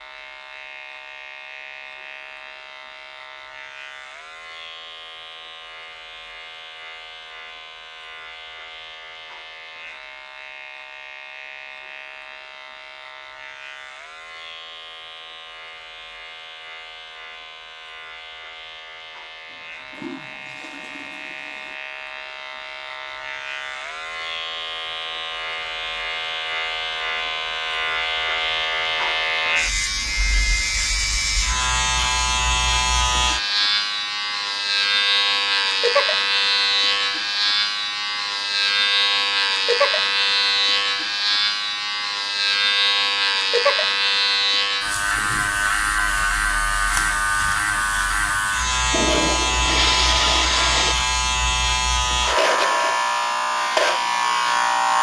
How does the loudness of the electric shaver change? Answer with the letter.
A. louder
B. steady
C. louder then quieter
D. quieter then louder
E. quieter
A.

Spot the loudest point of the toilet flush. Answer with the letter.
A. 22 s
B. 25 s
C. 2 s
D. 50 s
D.